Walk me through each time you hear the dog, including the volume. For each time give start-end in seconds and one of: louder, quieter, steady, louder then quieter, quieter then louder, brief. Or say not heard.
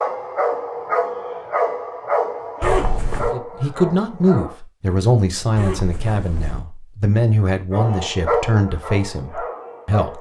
0.0-4.6 quieter
7.7-10.1 brief.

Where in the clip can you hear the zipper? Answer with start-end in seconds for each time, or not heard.
2.6-3.4, 5.5-6.7.